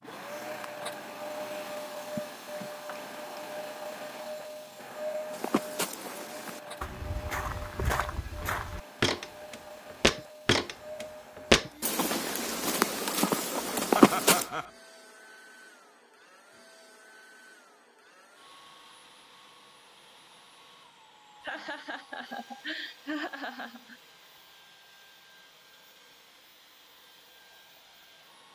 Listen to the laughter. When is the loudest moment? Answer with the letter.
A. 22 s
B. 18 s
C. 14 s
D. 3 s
C.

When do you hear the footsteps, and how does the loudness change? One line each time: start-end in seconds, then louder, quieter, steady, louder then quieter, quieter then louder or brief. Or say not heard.
5.3-14.4 louder.